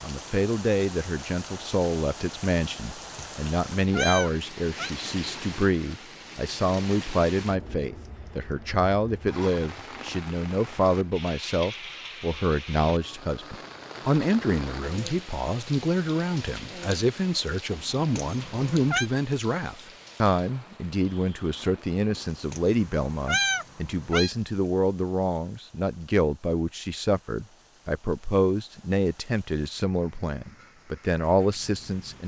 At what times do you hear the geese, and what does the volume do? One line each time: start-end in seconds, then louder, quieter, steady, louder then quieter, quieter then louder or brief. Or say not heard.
not heard.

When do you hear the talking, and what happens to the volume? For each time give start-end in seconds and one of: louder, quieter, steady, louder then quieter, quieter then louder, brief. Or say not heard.
0.0-32.2 steady.